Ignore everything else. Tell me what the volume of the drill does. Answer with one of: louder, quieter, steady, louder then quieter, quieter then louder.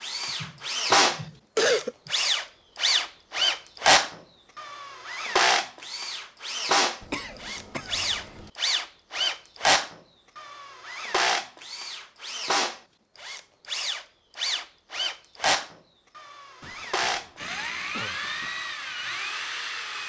quieter.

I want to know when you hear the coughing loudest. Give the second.
2 s.